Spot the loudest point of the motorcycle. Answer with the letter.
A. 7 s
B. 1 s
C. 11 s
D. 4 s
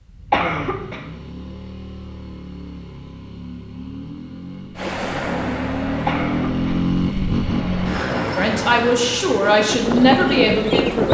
A.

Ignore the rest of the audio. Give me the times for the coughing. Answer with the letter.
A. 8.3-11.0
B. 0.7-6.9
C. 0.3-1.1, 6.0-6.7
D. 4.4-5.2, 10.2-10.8
C.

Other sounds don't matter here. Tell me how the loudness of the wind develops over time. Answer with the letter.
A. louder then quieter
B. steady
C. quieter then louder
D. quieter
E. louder
C.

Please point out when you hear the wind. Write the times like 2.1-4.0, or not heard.
4.8-11.0.